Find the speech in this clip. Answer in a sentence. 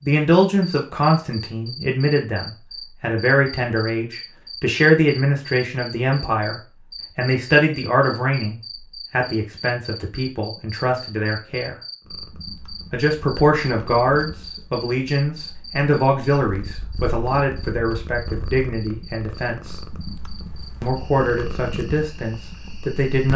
You can hear the speech from 0.0 to 11.8 s, from 12.9 to 19.8 s and from 20.8 to 23.3 s.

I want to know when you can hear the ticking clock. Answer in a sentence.
The ticking clock can't be heard in this clip.